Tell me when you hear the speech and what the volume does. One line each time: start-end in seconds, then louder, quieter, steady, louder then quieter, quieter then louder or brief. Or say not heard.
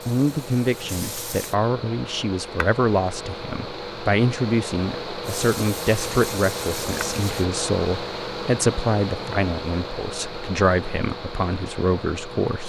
0.1-12.6 steady.